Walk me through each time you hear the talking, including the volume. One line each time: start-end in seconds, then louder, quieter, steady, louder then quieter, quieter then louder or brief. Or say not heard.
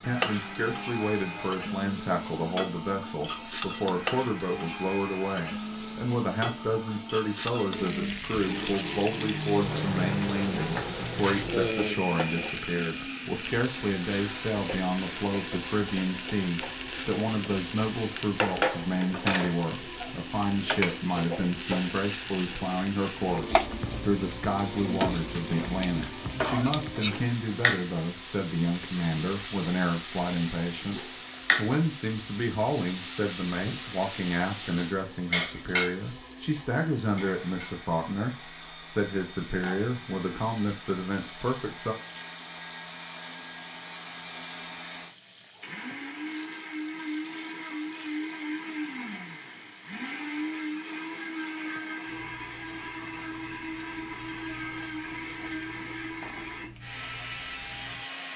0.0-42.0 steady.